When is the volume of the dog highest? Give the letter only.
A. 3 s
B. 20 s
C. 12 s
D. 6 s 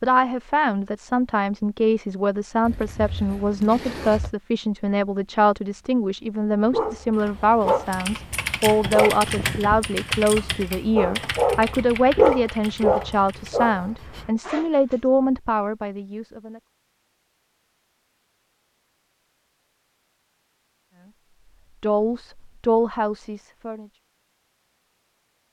C.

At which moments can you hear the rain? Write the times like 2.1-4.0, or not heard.
not heard.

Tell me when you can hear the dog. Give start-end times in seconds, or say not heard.
6.7-14.3.